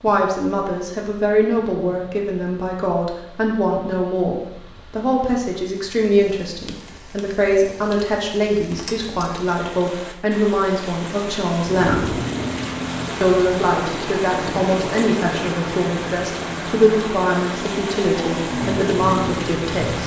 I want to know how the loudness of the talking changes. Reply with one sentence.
The loudness of the talking stays about the same.